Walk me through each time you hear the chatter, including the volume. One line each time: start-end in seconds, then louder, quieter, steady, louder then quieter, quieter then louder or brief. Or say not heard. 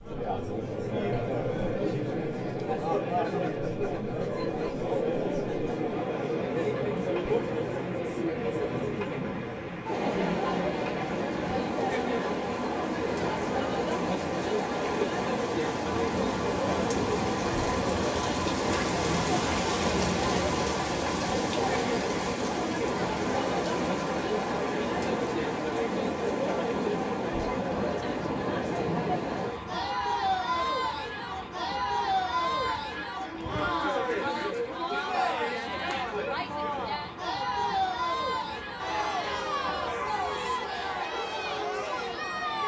0.0-42.6 steady.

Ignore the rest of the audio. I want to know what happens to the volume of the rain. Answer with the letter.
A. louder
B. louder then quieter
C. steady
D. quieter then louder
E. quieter
B.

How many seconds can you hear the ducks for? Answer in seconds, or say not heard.
2 s.